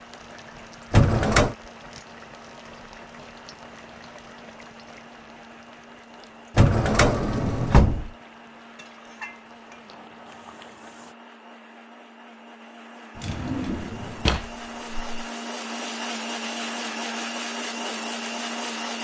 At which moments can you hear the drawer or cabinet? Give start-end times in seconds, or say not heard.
0.9-1.6, 6.5-8.1, 13.2-15.2.